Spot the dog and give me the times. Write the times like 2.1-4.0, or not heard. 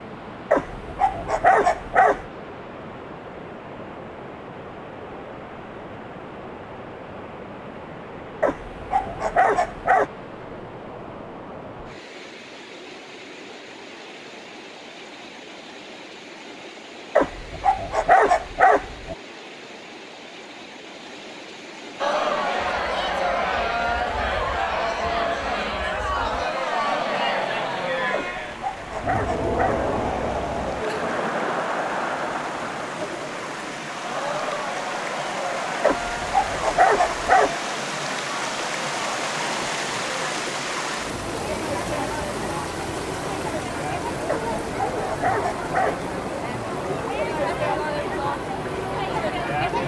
0.5-2.2, 8.4-10.1, 17.1-19.1, 28.1-29.9, 35.8-37.5, 44.2-46.0.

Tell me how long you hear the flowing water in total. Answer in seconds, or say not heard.
50 s.